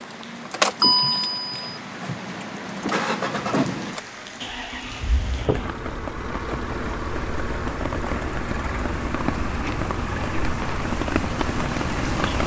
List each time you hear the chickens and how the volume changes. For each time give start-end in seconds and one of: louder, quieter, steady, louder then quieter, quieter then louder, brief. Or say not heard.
not heard.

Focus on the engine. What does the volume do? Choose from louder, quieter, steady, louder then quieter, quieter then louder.
quieter.